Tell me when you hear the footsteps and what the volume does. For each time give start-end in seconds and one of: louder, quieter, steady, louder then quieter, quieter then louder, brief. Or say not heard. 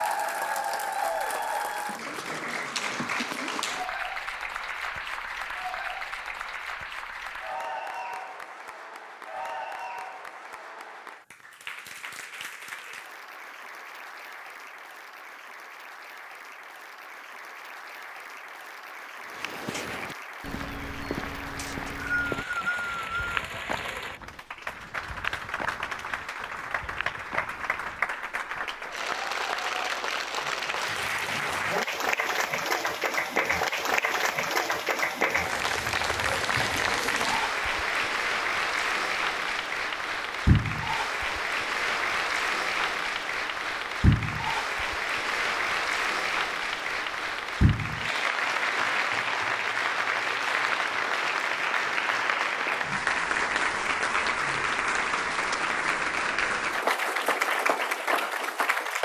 19.3-28.5 quieter.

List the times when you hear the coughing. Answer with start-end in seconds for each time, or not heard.
not heard.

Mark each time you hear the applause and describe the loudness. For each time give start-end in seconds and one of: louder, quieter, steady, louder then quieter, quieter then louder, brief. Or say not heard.
0.0-58.9 quieter then louder.